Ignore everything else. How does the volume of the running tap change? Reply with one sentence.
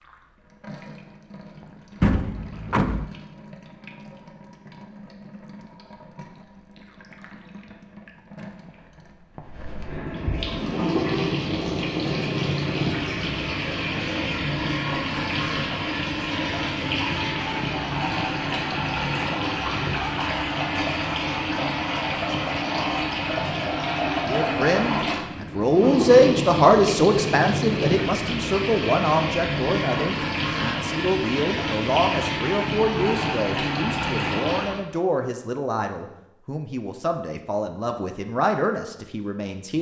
The loudness of the running tap goes up.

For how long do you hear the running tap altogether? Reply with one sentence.
You can hear the running tap for 35 seconds altogether.